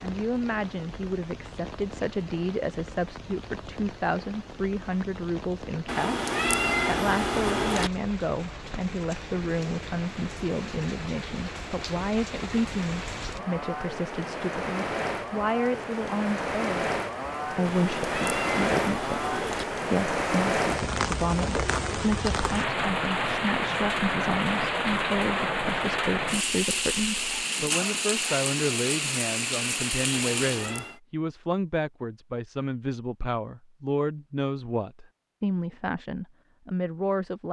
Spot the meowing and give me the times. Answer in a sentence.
The meowing can be heard from 5.8 to 7.9 s, from 17.6 to 19.6 s and from 30.1 to 31.0 s.